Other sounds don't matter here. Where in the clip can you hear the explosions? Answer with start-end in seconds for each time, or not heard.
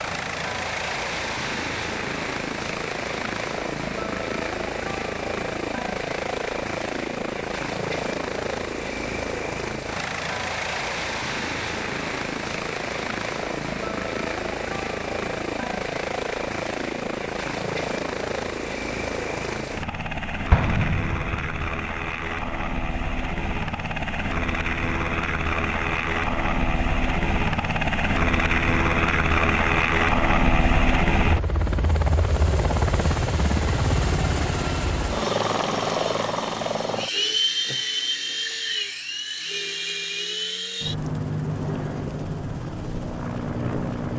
20.5-21.8.